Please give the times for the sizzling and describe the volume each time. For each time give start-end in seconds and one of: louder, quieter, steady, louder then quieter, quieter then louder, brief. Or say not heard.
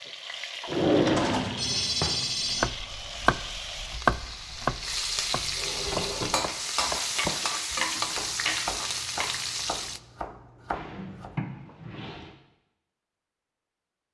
0.0-10.0 louder.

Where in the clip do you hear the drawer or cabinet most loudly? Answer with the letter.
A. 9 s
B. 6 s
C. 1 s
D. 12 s
C.